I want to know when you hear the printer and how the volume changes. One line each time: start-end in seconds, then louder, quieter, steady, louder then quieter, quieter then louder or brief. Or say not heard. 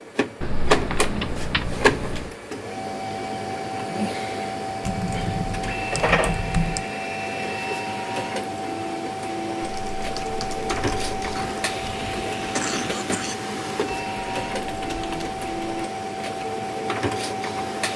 0.0-17.9 steady.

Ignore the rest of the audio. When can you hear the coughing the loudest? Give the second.
13 s.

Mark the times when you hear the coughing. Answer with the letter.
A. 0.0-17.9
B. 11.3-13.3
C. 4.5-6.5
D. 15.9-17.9
B.